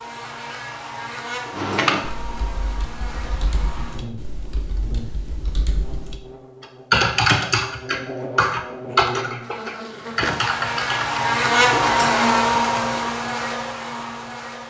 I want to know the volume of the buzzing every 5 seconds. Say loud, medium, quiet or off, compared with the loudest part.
quiet, quiet, loud.